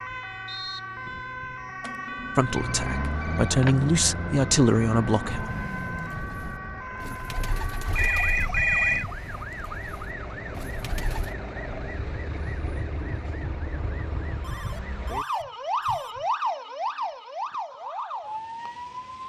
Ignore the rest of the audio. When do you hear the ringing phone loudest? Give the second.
9 s.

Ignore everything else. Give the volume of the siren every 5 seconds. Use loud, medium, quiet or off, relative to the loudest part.
medium, medium, medium, loud.